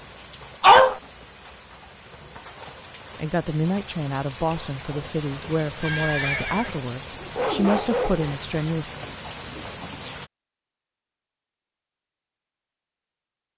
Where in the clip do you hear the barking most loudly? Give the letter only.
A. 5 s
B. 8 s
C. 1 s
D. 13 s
C.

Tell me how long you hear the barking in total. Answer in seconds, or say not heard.
3 s.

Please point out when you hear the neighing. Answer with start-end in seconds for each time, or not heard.
5.4-6.8.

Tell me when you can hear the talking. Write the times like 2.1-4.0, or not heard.
3.1-8.9.